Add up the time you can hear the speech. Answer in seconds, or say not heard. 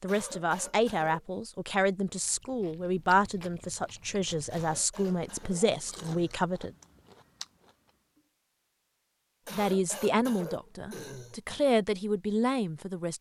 10 s.